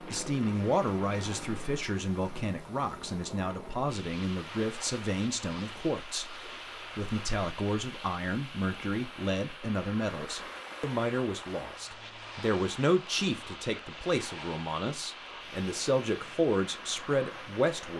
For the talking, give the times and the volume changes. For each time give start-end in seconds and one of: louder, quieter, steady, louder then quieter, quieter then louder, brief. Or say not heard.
0.0-17.9 steady.